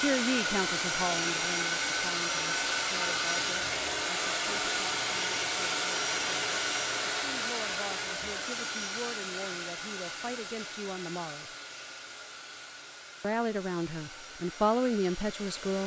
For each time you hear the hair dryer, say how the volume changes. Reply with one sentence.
The hair dryer can be heard from 0.0 to 15.8 s, getting quieter.